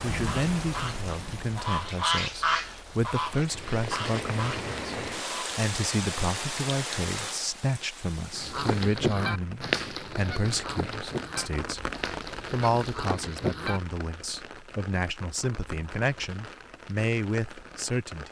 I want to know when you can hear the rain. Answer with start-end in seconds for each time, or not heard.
0.0-18.2.